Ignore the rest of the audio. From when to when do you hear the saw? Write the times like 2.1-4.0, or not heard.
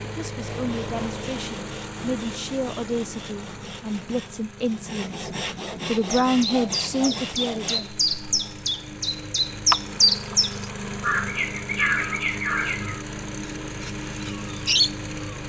0.5-7.9.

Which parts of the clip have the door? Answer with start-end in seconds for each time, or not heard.
not heard.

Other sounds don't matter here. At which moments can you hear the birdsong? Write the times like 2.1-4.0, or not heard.
6.0-15.4.